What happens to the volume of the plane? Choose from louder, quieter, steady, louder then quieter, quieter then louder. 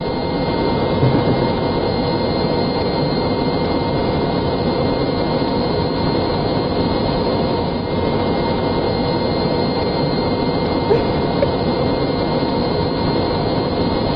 steady.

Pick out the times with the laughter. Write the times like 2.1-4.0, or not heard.
1.0-1.6, 10.8-11.7.